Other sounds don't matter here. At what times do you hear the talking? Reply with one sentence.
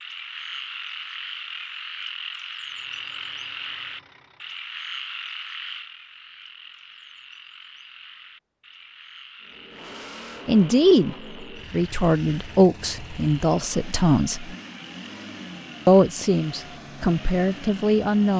You can hear the talking from 10.4 to 14.6 s and from 15.8 to 18.3 s.